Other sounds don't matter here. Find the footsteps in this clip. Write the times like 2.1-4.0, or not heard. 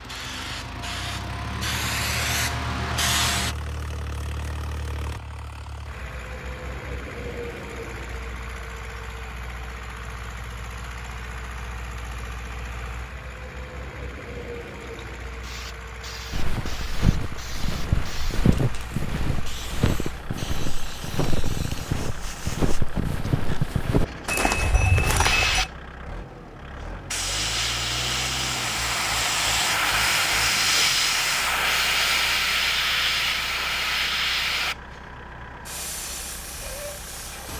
16.3-25.7.